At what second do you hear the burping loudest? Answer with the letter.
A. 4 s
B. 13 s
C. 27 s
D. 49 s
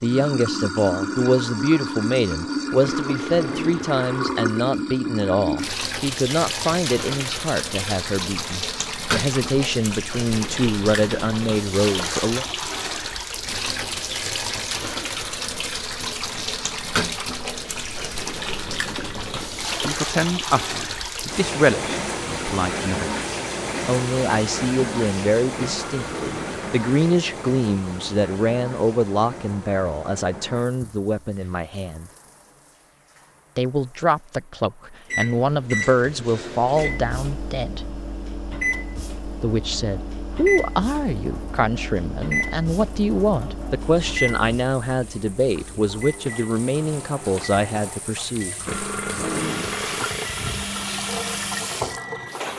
D.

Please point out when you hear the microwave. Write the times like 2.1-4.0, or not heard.
35.1-52.5.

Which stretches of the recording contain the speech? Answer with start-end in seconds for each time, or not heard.
0.0-12.4, 19.2-23.1, 23.9-32.1, 33.5-37.9, 39.4-48.5.